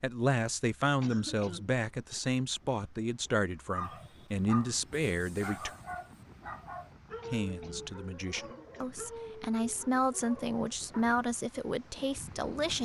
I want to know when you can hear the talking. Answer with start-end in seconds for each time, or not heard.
0.0-5.7, 7.2-12.8.